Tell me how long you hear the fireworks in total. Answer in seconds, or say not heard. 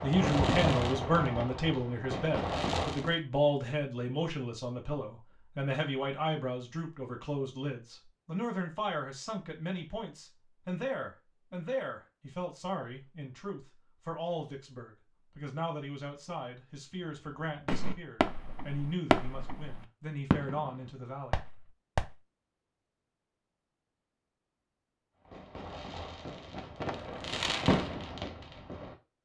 11 s.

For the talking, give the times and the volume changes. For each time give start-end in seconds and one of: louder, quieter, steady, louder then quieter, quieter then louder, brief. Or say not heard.
0.0-21.4 quieter.